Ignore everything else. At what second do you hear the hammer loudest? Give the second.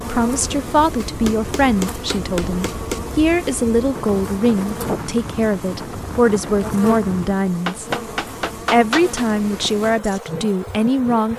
9 s.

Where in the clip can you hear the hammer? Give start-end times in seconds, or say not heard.
1.0-3.0, 7.7-9.2.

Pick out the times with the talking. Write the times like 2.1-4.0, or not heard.
0.1-7.8, 8.7-11.3.